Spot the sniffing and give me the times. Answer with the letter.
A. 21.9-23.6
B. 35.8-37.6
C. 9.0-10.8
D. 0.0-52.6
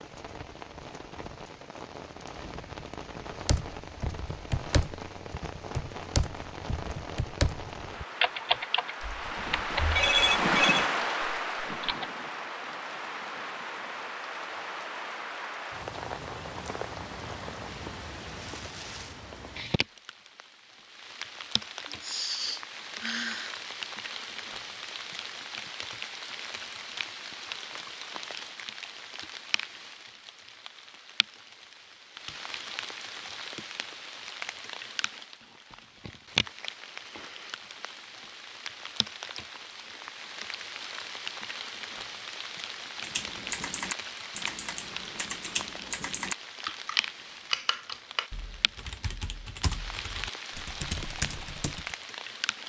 A.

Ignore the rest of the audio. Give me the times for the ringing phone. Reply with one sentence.
You can hear the ringing phone from 9.0 to 10.8 s.